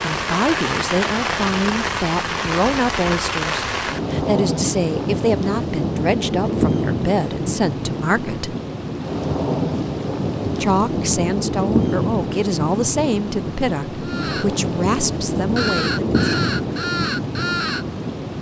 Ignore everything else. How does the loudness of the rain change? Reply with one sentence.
The loudness of the rain stays about the same.